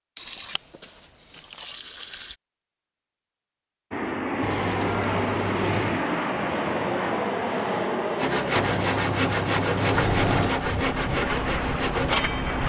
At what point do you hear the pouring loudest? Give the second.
10 s.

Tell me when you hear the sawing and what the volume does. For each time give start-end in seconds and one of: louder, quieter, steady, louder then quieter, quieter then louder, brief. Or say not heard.
8.2-12.6 steady.